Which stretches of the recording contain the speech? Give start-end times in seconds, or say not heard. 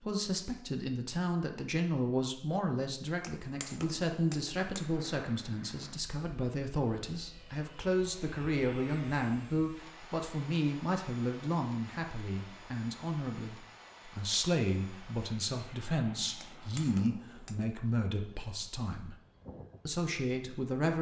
0.0-19.1, 19.9-20.9.